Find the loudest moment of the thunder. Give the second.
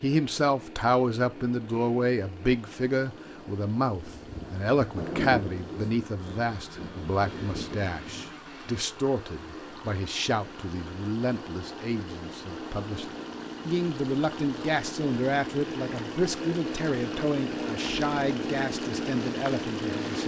5 s.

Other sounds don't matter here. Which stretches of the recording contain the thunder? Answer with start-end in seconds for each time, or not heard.
4.0-8.3.